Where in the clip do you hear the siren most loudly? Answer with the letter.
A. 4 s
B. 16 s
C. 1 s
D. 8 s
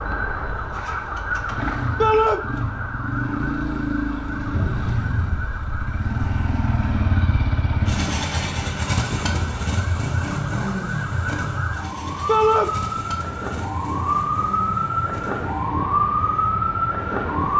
B.